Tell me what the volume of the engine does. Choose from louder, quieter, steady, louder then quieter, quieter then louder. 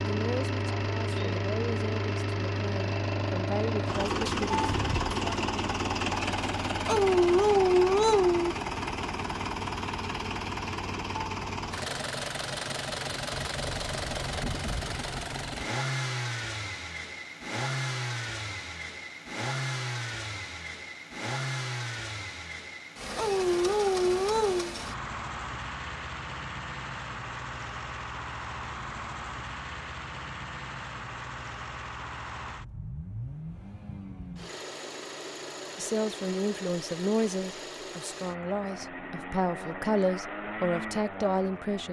quieter.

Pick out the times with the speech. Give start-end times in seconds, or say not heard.
0.0-4.7, 35.8-41.8.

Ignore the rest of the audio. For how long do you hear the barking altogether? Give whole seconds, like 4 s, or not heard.
3 s.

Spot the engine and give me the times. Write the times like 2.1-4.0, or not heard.
0.0-41.8.